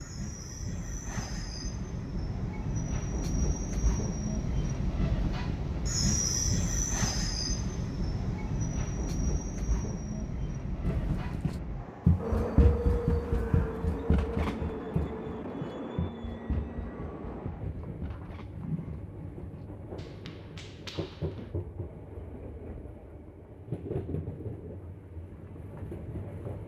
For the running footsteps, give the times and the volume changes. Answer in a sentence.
The running footsteps can be heard from 10.8 to 21.6 s, getting quieter.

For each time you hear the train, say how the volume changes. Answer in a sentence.
The train can be heard from 0.0 to 26.6 s, getting quieter.